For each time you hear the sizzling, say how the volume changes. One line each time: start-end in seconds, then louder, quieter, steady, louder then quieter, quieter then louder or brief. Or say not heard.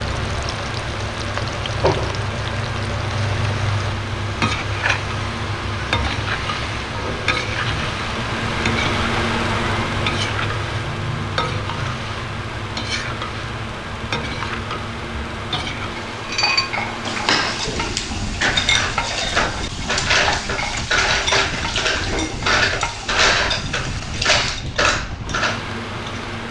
0.0-26.4 quieter.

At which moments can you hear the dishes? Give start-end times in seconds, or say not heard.
16.2-25.6.